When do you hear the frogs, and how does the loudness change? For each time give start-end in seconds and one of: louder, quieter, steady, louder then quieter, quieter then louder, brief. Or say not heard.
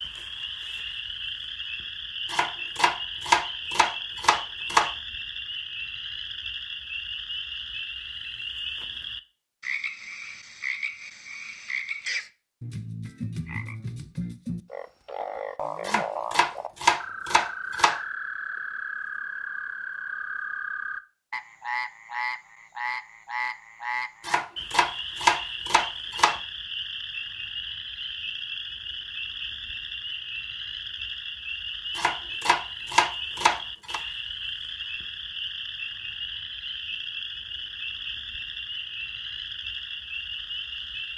0.0-41.1 steady.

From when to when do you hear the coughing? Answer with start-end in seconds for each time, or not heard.
not heard.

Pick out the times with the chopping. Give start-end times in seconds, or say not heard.
2.3-4.9, 15.8-18.0, 24.2-26.4, 31.9-34.0.